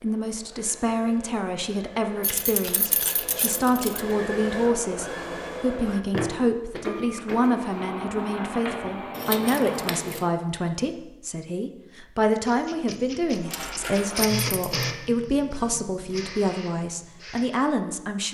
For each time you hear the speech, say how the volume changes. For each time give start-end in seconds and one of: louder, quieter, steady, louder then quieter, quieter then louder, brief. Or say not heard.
0.0-18.2 steady.